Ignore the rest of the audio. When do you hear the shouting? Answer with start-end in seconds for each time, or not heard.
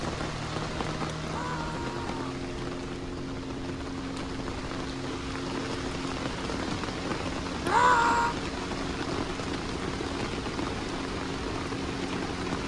1.2-2.4, 7.7-8.3.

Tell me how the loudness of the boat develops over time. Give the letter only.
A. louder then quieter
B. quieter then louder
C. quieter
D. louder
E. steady
E.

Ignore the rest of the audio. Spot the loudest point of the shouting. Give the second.
8 s.